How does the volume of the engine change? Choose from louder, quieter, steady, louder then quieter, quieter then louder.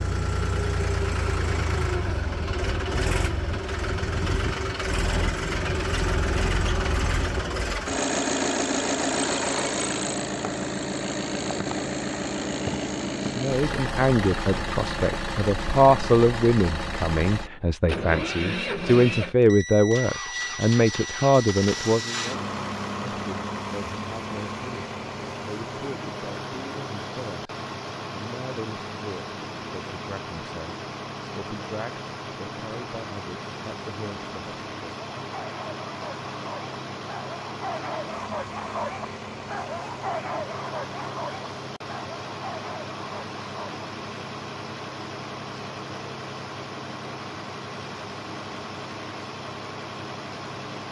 quieter.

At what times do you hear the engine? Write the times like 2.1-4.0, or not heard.
0.0-50.8.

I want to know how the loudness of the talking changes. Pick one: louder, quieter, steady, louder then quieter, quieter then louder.
quieter.